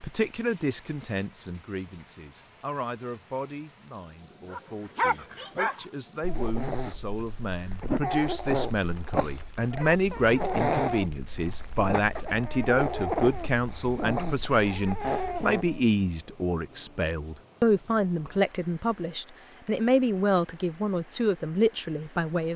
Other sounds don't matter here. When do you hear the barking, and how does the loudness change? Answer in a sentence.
The barking can be heard from 4.5 to 15.8 s, at a steady volume.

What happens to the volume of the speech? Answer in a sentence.
The volume of the speech goes up.